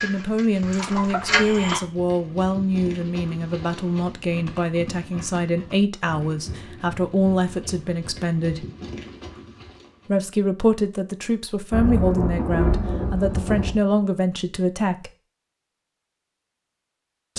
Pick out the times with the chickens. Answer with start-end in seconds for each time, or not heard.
0.0-1.8.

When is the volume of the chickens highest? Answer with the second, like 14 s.
1 s.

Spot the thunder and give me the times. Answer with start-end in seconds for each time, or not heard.
11.7-13.7.